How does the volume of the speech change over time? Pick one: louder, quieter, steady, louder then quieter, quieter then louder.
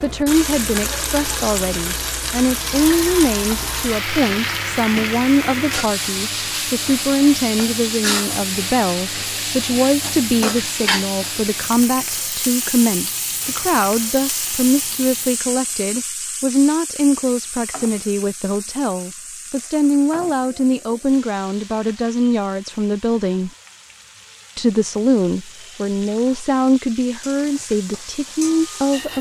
steady.